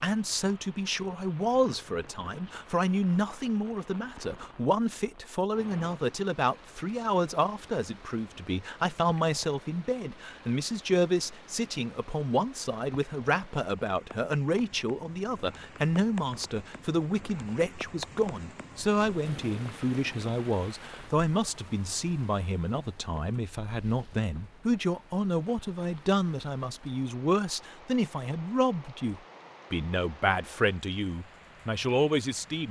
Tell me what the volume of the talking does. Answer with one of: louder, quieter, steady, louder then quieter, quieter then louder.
steady.